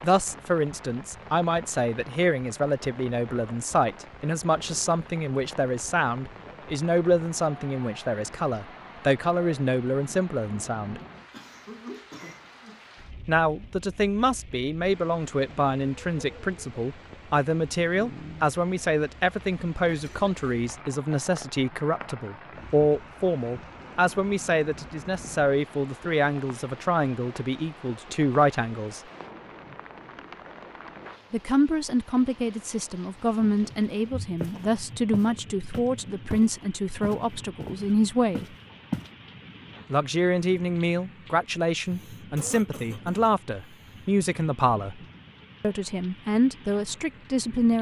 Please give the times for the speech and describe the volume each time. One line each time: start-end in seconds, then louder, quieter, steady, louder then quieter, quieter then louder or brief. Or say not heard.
0.0-11.0 steady
13.2-29.0 steady
31.3-38.5 steady
39.9-45.0 steady
45.6-47.7 brief.